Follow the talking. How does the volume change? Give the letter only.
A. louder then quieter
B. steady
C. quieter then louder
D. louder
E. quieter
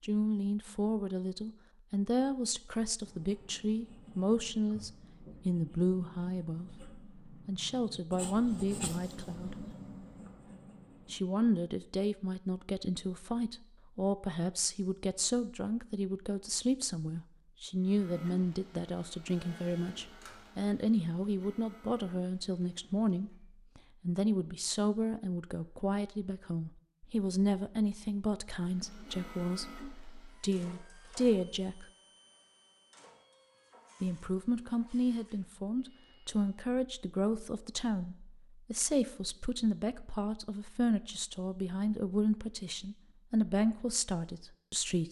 B.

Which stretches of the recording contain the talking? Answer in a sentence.
You can hear the talking from 0.0 to 9.7 s, from 11.1 to 31.9 s and from 34.0 to 45.0 s.